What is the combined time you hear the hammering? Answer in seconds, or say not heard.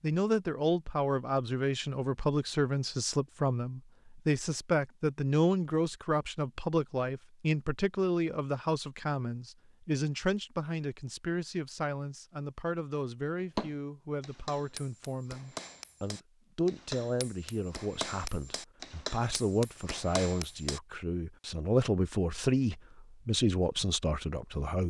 7 s.